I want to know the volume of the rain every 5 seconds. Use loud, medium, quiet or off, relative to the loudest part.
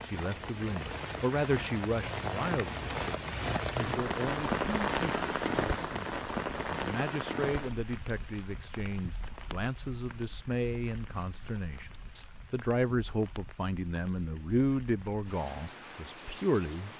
loud, loud, quiet, quiet.